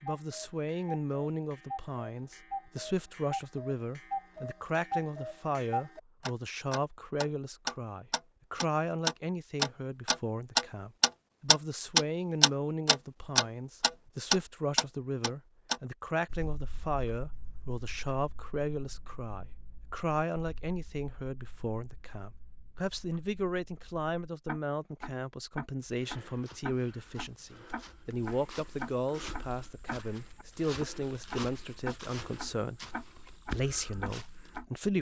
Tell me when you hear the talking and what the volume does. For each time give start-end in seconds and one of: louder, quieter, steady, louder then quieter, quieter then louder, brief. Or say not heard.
0.0-34.9 steady.